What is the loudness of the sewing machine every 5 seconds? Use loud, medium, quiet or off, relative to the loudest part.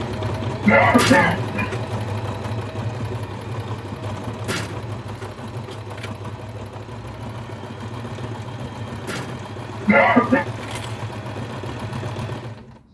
loud, medium, loud.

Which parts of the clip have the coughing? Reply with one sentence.
The coughing can be heard from 0.7 to 1.8 s and from 9.8 to 10.4 s.